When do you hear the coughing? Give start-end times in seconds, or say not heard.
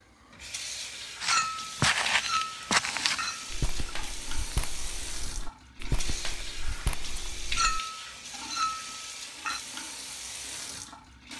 not heard.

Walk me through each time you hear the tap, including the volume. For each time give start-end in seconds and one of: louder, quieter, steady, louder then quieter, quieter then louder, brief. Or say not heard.
0.0-11.3 steady.